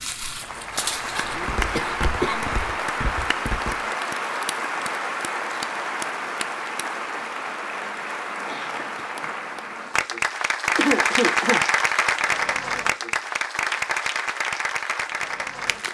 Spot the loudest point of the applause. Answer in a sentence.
The volume of the applause peaks at 11 seconds.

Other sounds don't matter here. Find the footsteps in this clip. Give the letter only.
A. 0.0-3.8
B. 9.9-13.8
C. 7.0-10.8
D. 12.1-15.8
A.